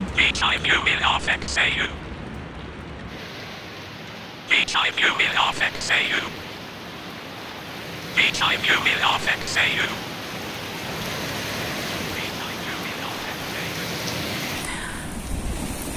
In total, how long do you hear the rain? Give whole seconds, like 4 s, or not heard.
16 s.